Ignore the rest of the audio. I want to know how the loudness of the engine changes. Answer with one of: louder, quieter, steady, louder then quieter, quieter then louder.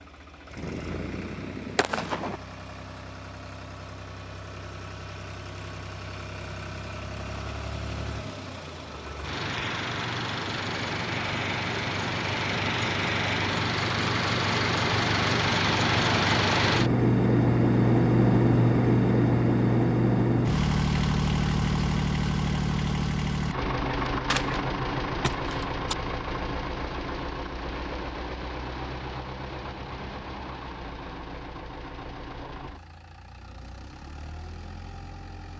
louder then quieter.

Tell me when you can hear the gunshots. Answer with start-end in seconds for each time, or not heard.
0.6-2.4, 24.1-25.9.